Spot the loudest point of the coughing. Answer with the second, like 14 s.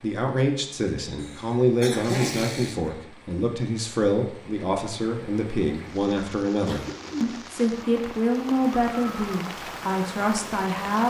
2 s.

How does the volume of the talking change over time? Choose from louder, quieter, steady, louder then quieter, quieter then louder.
steady.